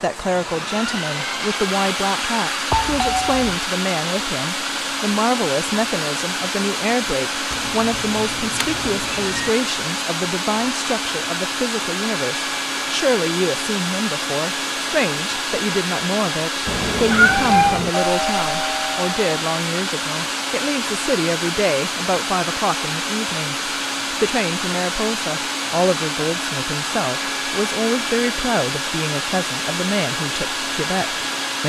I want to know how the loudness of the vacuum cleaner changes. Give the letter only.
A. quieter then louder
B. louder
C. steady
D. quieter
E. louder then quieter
C.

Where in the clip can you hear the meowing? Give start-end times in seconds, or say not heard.
7.5-9.5, 16.6-17.9.